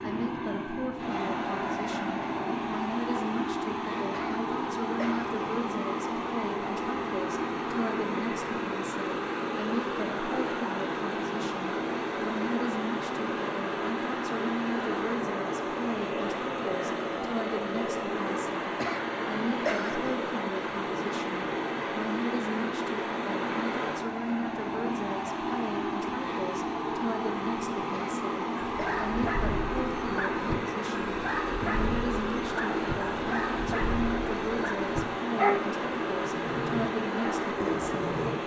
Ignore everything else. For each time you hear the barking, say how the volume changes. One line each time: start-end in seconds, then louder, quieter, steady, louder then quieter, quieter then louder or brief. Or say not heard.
28.6-38.4 louder then quieter.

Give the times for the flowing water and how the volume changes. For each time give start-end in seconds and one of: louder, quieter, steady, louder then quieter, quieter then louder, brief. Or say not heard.
0.0-38.4 steady.